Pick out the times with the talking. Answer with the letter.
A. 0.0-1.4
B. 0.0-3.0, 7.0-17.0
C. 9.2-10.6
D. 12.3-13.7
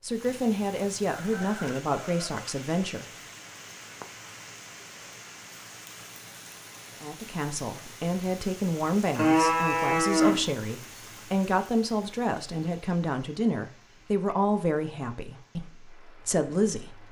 B.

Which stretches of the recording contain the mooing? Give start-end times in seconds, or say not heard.
9.2-10.6.